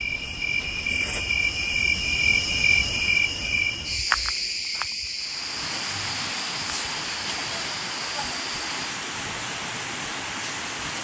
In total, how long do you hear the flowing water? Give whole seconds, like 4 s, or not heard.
6 s.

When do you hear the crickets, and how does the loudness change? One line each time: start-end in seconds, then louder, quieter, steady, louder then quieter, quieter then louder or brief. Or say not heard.
0.0-8.8 quieter.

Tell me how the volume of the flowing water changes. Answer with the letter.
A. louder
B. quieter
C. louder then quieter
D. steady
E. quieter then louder
D.